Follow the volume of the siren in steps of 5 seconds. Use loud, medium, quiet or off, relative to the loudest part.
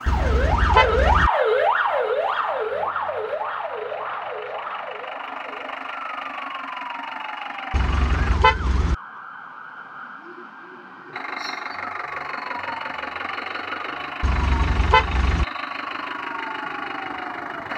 loud, quiet, quiet, quiet.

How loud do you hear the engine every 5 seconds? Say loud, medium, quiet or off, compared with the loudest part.
medium, loud, loud, loud.